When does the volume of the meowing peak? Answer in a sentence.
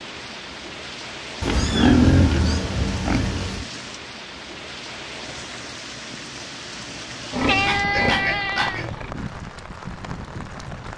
The loudest moment of the meowing is at 8 seconds.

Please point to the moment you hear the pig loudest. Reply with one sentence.
The loudest moment of the pig is at 2 seconds.